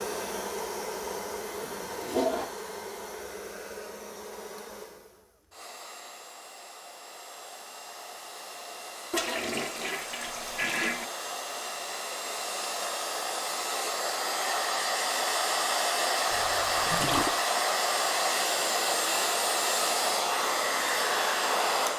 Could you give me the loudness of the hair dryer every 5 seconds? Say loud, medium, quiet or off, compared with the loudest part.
medium, quiet, medium, loud, loud.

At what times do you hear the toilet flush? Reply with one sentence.
The toilet flush can be heard from 1.6 to 2.5 s, from 9.1 to 11.1 s and from 16.3 to 17.4 s.